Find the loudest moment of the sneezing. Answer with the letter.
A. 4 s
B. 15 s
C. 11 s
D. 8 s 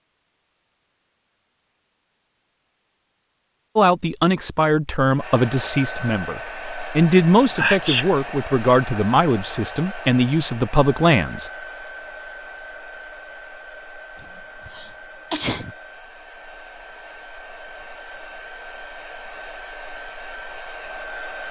D.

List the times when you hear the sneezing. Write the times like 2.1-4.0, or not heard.
7.5-8.2, 14.2-15.8.